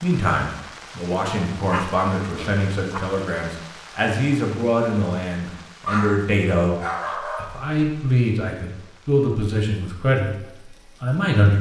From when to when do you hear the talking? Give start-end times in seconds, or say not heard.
0.0-6.8, 7.4-11.5.